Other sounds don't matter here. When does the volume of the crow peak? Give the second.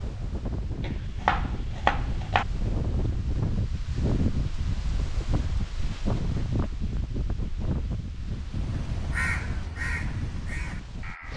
9 s.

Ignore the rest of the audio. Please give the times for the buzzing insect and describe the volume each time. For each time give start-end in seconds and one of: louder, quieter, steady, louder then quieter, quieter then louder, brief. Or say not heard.
not heard.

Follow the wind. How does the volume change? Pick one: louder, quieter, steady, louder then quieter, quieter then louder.
louder then quieter.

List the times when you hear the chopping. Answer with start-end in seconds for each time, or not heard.
0.8-2.5.